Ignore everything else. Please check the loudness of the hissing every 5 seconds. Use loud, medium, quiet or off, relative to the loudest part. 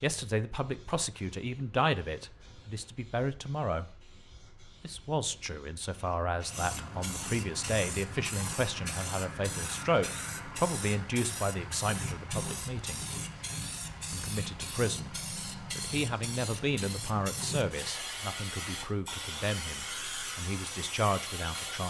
quiet, loud, loud, loud, loud.